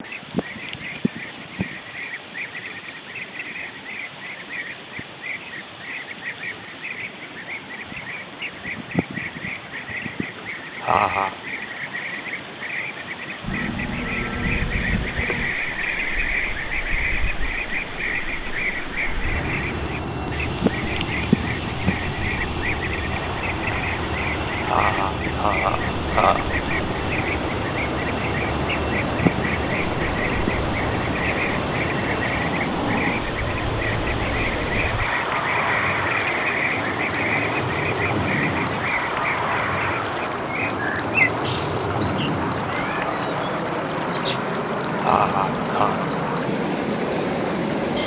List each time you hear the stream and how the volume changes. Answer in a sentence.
The stream can be heard from 0.0 to 48.0 s, getting louder.